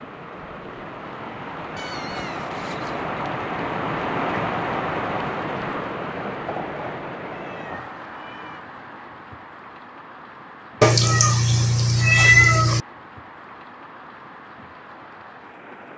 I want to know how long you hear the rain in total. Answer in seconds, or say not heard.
16 s.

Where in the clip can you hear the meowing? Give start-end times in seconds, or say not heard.
1.8-3.1, 6.5-8.6, 10.8-12.8.